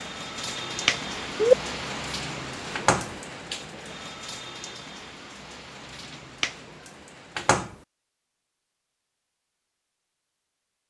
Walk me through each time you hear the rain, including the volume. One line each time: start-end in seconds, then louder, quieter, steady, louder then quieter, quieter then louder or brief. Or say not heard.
0.0-7.5 quieter.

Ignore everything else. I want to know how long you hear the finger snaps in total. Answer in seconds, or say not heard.
2 s.